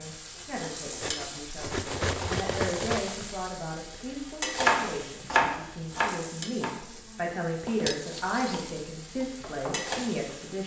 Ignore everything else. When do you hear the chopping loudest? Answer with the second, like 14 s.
5 s.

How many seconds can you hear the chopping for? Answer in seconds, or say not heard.
6 s.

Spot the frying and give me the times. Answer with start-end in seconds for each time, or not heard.
0.0-10.6.